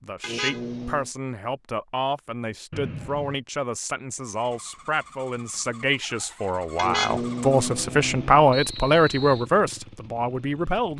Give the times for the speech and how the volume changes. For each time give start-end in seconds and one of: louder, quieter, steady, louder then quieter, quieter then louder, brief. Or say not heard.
0.0-10.9 louder.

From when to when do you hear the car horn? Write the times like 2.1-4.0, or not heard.
0.2-1.1, 6.8-8.4.